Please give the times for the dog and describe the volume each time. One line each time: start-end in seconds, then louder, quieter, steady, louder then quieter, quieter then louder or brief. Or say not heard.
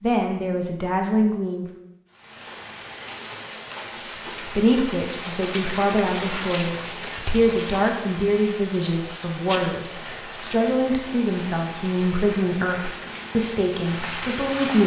not heard.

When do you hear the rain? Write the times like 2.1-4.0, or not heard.
2.1-14.8.